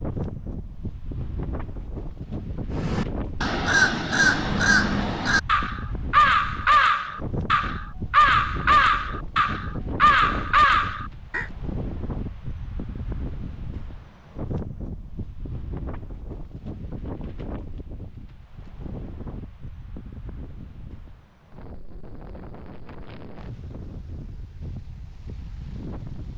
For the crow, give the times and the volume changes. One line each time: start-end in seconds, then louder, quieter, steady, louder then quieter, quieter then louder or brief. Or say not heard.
2.7-11.4 steady.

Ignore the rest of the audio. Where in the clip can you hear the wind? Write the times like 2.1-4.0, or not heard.
0.0-26.3.